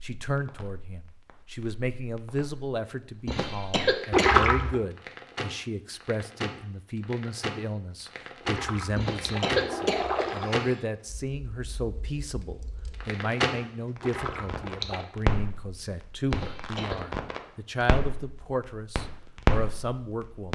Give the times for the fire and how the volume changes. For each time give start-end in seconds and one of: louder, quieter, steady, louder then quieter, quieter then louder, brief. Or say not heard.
0.2-20.5 louder.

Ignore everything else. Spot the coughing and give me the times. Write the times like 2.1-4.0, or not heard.
3.2-4.3, 8.9-10.8, 16.3-16.9.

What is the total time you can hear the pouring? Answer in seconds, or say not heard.
4 s.